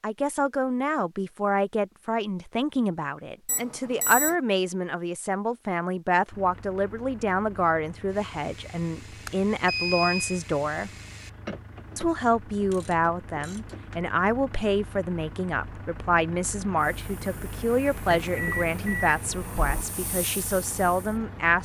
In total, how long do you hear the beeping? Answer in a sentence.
The beeping can be heard for 4 seconds in total.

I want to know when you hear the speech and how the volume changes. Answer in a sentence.
You can hear the speech from 0.0 to 10.9 s, at a steady volume; and from 11.9 to 21.5 s, at a steady volume.